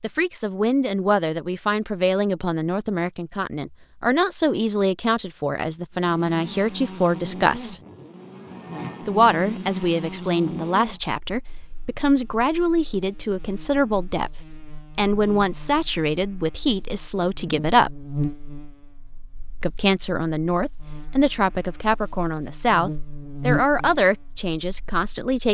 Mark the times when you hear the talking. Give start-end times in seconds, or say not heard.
0.0-7.8, 9.1-18.1, 19.6-25.4.